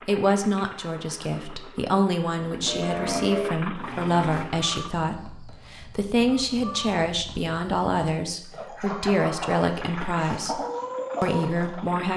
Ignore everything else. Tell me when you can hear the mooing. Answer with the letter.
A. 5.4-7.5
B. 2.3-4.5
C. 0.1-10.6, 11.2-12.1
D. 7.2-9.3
B.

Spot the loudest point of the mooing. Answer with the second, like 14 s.
3 s.